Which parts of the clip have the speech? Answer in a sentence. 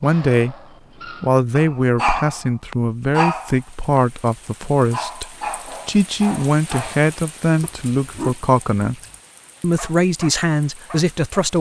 You can hear the speech from 0.0 to 0.6 s, from 1.2 to 5.2 s, from 5.8 to 9.0 s and from 9.6 to 11.5 s.